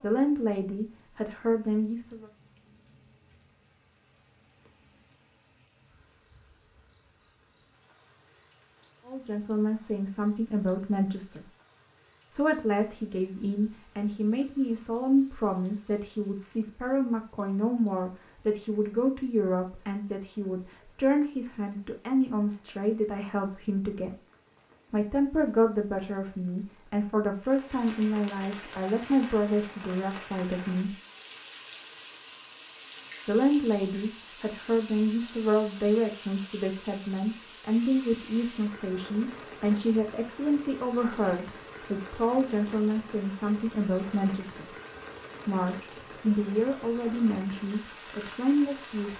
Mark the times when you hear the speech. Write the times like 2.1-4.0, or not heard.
0.0-2.2, 9.1-11.4, 12.3-24.1, 24.9-30.9, 33.2-44.6, 45.5-49.1.